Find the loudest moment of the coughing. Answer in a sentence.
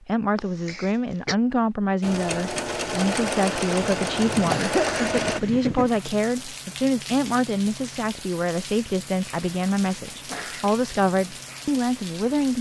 The volume of the coughing peaks at 5 seconds.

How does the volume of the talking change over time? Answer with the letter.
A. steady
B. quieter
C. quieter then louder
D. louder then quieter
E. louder
A.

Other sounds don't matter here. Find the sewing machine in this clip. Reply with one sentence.
The sewing machine can be heard from 2.0 to 5.4 s.